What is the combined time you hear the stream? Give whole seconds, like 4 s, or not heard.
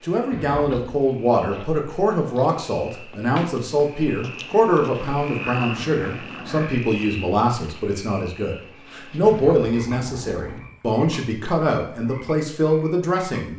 not heard.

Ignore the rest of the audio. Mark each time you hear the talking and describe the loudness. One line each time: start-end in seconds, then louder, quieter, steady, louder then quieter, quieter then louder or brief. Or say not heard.
0.0-13.5 steady.